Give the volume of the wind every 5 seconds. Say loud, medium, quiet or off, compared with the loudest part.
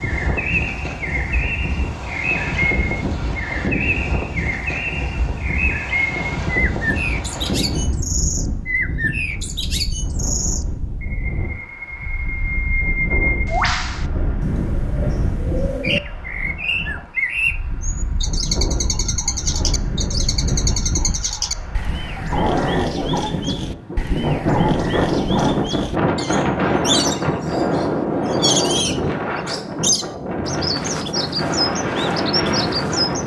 medium, medium, medium, medium, loud, loud, loud.